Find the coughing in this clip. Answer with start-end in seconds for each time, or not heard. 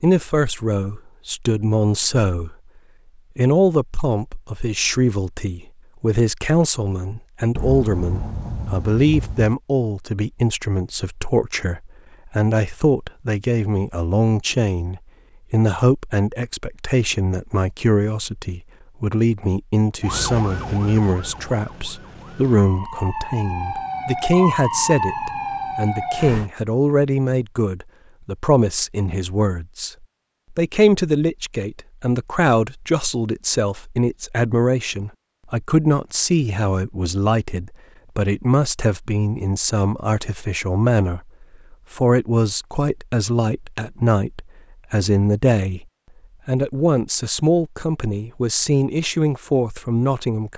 not heard.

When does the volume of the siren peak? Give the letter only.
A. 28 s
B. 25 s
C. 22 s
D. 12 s
B.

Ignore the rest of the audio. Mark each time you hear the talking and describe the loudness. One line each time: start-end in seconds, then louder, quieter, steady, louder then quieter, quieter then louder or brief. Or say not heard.
0.0-2.5 brief
3.4-45.9 steady
46.5-50.5 steady.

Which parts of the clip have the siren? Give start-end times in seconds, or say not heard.
20.0-26.5.